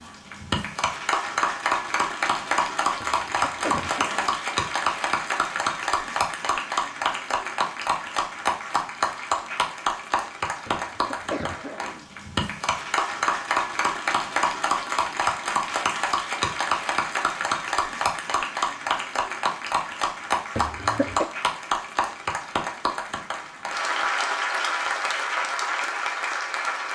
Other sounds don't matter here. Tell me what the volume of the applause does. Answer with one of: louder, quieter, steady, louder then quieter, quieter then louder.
steady.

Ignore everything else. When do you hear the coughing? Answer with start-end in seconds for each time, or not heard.
3.0-4.4, 10.7-12.1, 20.6-21.2.